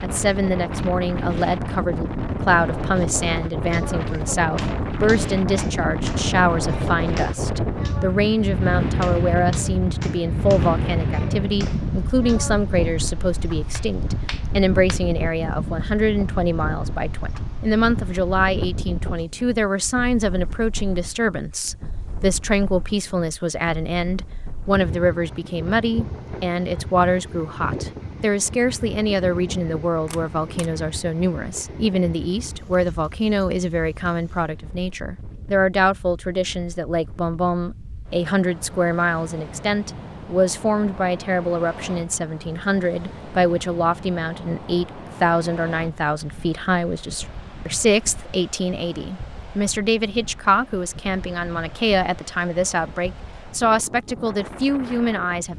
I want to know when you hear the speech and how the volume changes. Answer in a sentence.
The speech can be heard from 0.0 to 55.5 s, at a steady volume.